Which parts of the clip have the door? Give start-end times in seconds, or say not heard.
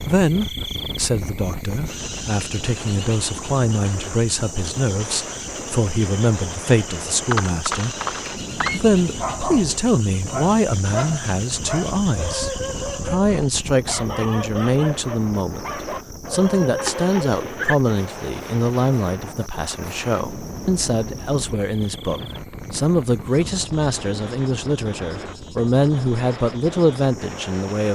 not heard.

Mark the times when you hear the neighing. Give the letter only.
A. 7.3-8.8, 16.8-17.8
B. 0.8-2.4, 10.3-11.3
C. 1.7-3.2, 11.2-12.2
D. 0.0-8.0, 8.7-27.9
A.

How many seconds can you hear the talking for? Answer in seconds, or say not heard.
27 s.